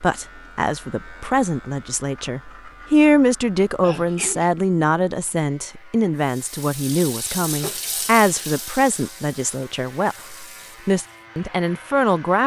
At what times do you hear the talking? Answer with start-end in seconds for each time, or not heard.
0.0-12.4.